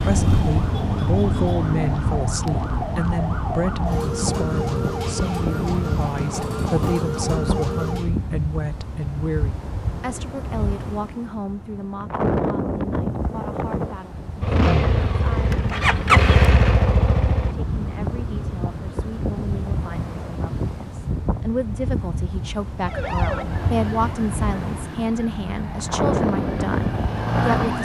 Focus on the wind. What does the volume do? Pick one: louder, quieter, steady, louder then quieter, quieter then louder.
steady.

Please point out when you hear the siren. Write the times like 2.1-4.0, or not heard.
0.0-8.2, 22.8-27.8.